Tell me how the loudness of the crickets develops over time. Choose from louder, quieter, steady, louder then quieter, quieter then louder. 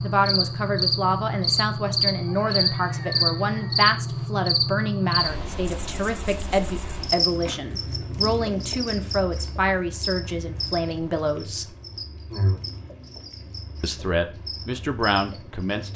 quieter.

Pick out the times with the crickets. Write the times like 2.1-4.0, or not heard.
0.0-15.9.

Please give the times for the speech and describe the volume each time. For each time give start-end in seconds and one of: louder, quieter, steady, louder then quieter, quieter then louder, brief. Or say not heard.
0.0-11.7 steady
13.8-15.9 brief.